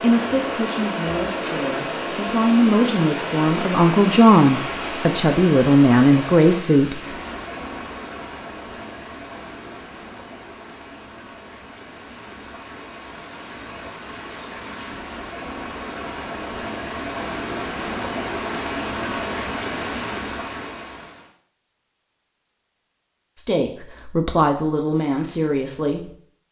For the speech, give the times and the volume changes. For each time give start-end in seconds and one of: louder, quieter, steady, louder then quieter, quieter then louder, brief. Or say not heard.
0.0-7.0 louder
23.4-26.1 brief.